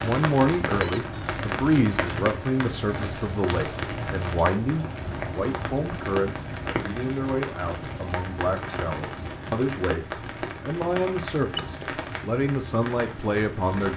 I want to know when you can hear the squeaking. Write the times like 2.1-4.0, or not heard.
0.8-1.4, 11.4-11.8.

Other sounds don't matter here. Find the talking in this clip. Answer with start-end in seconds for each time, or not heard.
0.0-13.9.